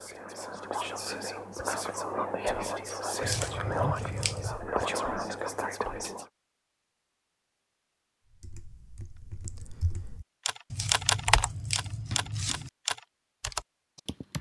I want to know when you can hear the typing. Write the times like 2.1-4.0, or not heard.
8.3-14.3.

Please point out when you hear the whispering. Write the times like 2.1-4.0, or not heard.
0.0-6.2.